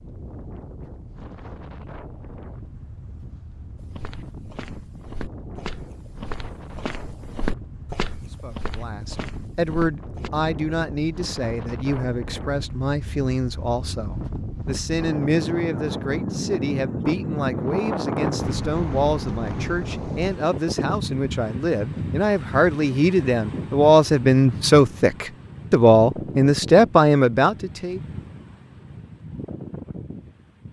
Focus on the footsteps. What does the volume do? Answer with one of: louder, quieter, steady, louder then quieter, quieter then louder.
louder then quieter.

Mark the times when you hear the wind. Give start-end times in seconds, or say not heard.
0.0-30.6.